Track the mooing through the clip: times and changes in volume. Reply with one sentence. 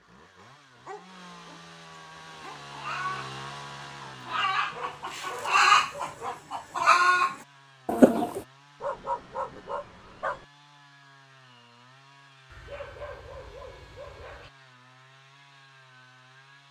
The mooing can't be heard in this clip.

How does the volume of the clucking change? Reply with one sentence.
The loudness of the clucking goes up.